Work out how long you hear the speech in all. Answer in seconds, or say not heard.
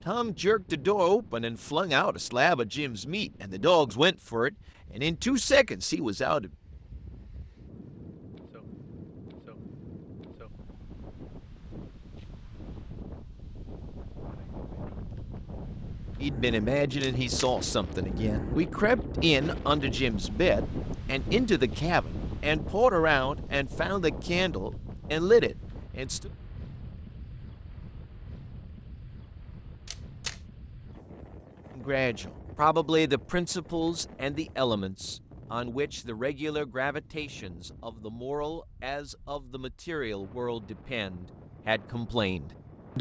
28 s.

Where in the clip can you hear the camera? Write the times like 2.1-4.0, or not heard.
17.0-17.6, 29.9-30.4.